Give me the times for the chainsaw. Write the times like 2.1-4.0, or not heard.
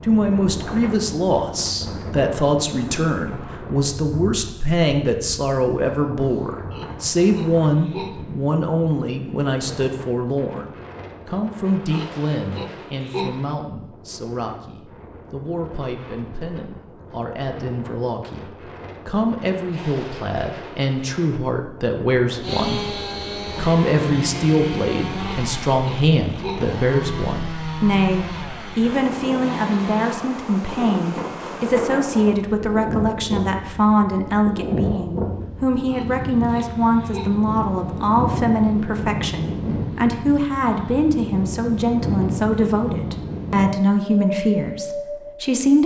22.4-30.1.